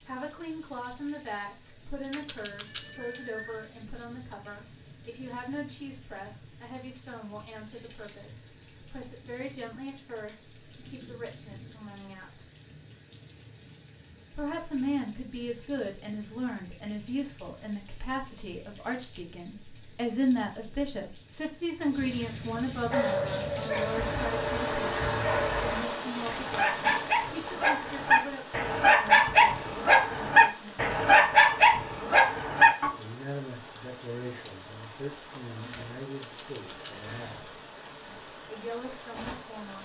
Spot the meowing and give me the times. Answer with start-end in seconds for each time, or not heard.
2.1-3.5, 36.2-37.2.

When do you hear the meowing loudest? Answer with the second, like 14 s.
3 s.